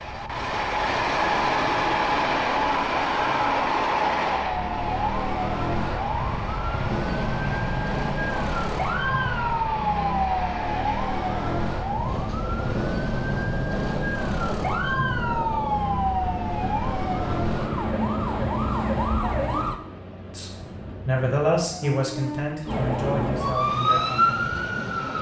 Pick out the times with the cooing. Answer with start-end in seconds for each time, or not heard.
not heard.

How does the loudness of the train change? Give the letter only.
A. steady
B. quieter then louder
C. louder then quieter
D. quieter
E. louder
D.